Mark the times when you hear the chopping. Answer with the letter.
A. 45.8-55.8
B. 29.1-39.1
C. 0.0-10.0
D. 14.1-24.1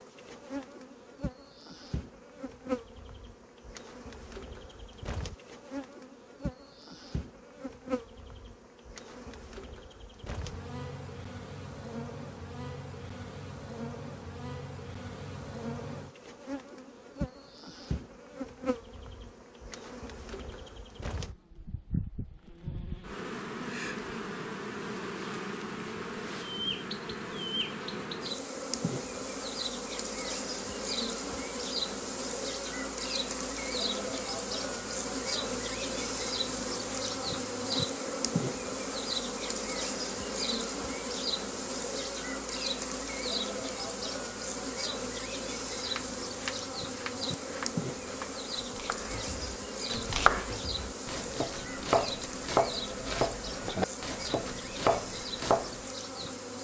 A.